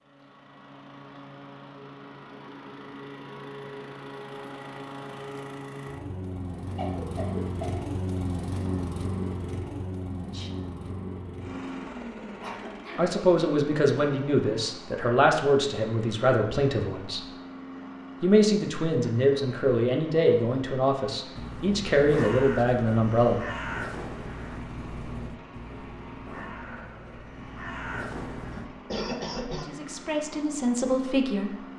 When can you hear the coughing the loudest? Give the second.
29 s.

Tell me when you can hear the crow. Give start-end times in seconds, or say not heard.
21.4-28.7.